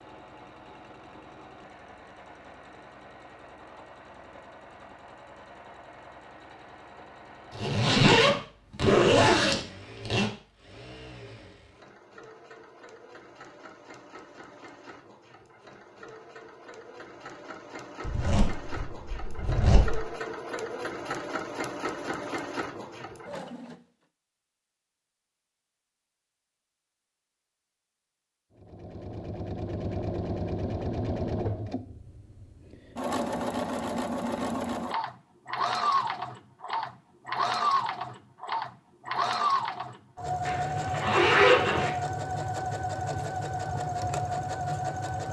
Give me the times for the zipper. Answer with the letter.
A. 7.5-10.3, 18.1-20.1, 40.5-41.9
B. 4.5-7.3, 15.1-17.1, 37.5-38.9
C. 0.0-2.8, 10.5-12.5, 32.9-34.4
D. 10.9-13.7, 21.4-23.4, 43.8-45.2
A.